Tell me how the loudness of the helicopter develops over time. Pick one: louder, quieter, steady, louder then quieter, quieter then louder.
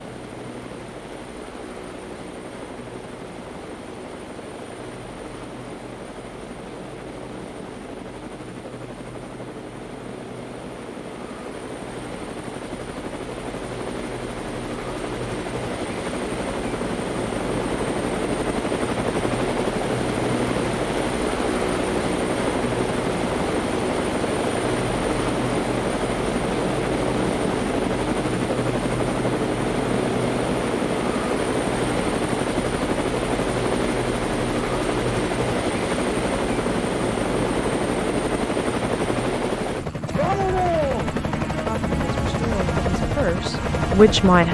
louder.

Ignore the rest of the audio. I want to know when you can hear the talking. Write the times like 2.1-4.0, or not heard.
41.6-44.4.